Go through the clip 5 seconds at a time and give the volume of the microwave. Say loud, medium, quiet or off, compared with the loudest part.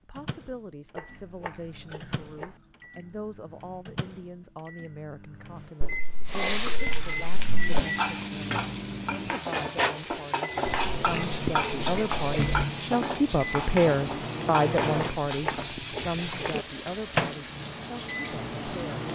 quiet, loud, loud, loud.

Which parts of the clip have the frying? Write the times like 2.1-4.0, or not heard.
6.2-19.1.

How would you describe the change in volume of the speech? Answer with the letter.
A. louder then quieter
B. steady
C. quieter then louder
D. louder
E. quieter
A.